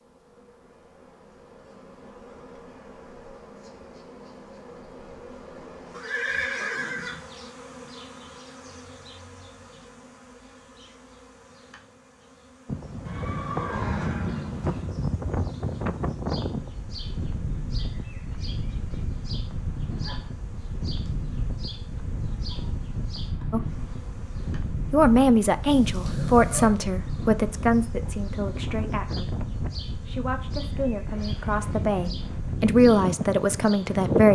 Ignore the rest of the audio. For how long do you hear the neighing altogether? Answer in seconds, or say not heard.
4 s.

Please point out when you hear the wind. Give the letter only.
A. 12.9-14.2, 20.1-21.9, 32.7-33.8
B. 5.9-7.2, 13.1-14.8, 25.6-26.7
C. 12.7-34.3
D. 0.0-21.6
C.